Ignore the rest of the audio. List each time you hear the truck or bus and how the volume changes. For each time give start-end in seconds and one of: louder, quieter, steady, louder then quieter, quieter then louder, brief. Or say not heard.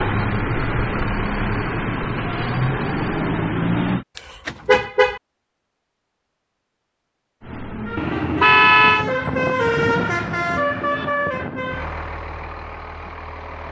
0.0-4.0 steady
7.4-13.6 louder then quieter.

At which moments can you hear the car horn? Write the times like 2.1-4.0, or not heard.
4.2-5.2, 8.0-9.1.